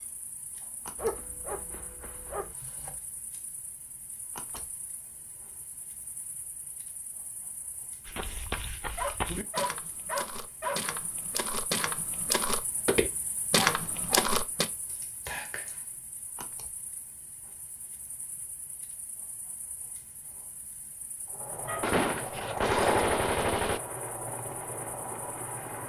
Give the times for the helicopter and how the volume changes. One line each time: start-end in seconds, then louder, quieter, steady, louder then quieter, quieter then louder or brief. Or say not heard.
21.2-25.8 louder then quieter.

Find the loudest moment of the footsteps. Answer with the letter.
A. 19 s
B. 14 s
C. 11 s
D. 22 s
B.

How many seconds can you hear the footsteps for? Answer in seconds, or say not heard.
7 s.